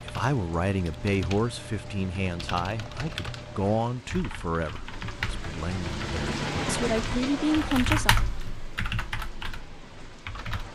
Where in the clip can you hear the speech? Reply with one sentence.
The speech can be heard from 0.0 to 8.2 s.